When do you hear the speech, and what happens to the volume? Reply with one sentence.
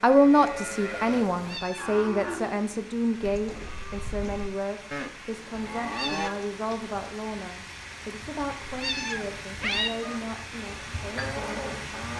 You can hear the speech from 0.0 to 11.9 s, getting quieter.